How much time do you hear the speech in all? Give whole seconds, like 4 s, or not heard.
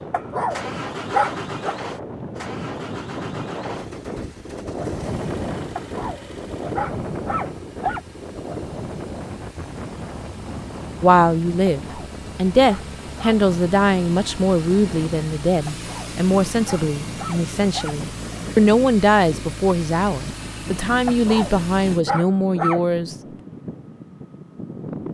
12 s.